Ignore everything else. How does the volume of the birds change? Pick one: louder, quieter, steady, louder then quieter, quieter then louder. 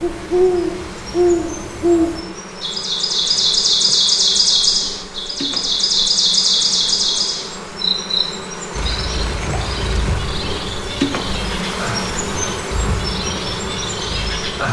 quieter.